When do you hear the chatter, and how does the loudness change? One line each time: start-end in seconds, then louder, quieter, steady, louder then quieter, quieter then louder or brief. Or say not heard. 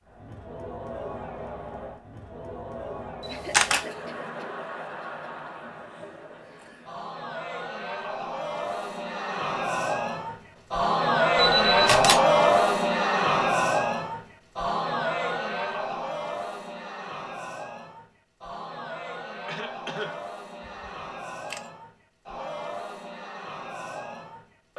0.0-24.7 louder then quieter.